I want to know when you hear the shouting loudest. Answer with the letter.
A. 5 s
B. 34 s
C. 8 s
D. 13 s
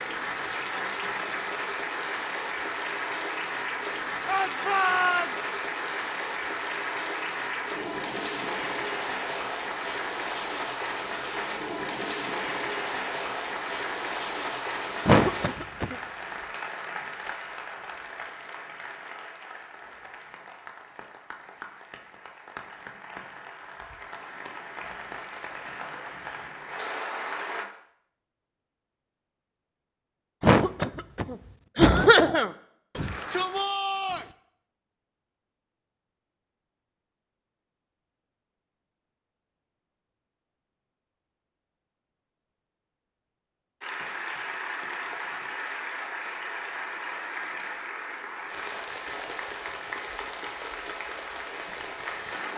A.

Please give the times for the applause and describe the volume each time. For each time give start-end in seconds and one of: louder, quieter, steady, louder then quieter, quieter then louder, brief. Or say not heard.
0.0-27.6 quieter
43.8-52.5 steady.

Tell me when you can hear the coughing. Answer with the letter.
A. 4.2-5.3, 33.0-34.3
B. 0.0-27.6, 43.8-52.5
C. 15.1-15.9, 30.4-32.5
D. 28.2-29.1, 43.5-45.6
C.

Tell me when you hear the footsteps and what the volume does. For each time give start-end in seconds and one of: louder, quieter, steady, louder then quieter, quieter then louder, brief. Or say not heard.
not heard.